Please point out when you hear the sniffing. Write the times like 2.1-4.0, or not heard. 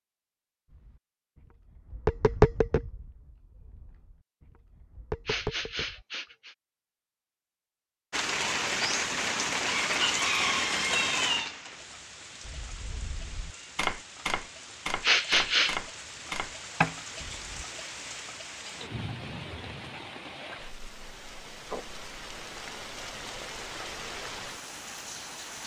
5.2-6.5, 15.0-15.8.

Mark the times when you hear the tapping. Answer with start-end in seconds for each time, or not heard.
0.7-6.0, 12.4-17.6.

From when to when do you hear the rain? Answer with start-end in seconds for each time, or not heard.
8.1-25.6.